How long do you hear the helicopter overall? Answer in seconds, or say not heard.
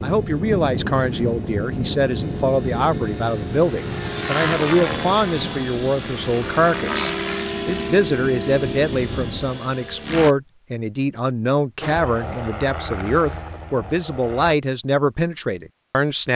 13 s.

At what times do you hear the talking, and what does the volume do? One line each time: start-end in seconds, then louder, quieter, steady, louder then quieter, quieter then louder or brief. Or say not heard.
0.0-16.2 steady.